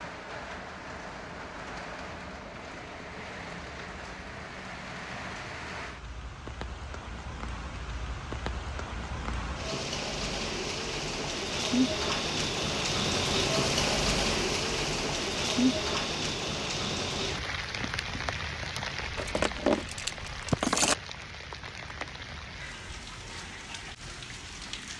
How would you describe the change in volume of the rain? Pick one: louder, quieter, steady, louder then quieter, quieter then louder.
louder then quieter.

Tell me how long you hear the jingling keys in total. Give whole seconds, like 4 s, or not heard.
2 s.